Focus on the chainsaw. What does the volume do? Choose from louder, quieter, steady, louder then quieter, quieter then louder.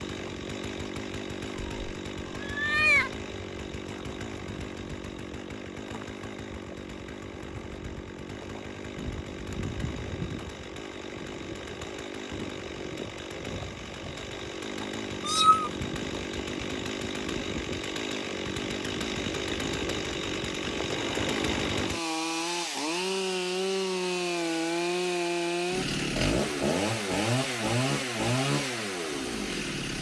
louder.